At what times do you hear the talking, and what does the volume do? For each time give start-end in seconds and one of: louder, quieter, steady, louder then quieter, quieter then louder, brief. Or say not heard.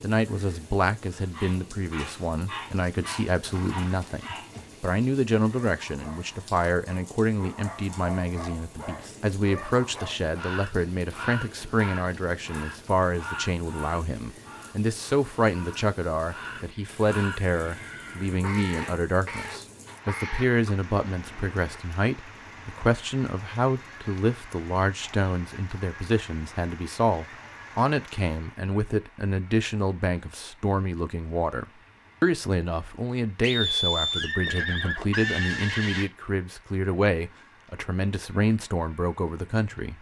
0.0-39.9 steady.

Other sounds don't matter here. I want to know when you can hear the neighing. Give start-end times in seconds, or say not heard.
3.4-4.8, 16.4-18.4, 33.4-36.1.